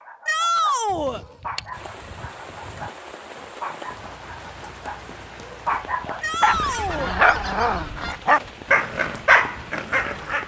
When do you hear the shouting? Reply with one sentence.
You can hear the shouting from 0.2 to 1.2 s and from 6.2 to 7.2 s.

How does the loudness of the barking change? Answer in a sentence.
The volume of the barking goes up.